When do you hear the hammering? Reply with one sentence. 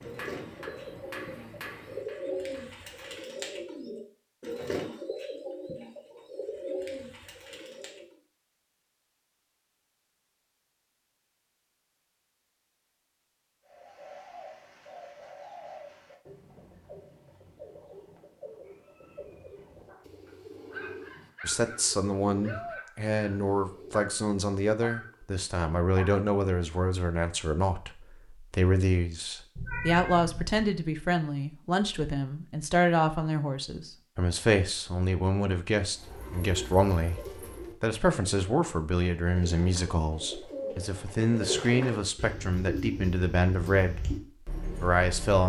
You can hear the hammering from 0.0 to 3.2 s.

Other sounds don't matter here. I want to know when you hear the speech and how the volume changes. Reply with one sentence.
You can hear the speech from 21.4 to 44.0 s, at a steady volume; and briefly from 44.8 to 45.4 s.